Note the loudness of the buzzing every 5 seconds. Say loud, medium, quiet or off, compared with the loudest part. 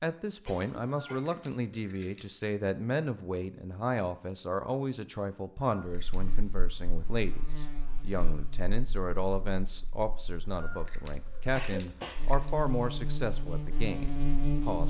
off, quiet, loud.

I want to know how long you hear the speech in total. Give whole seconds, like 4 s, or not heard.
15 s.